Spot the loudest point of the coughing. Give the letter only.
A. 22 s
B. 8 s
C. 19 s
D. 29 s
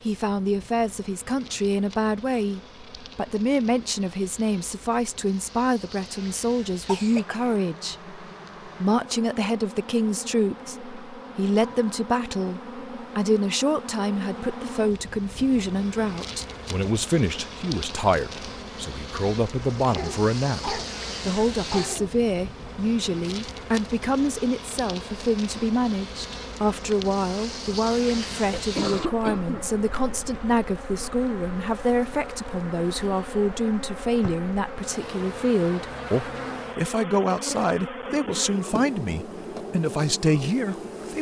D.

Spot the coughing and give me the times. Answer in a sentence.
You can hear the coughing from 6.8 to 7.5 s, from 19.9 to 22.1 s and from 28.4 to 29.7 s.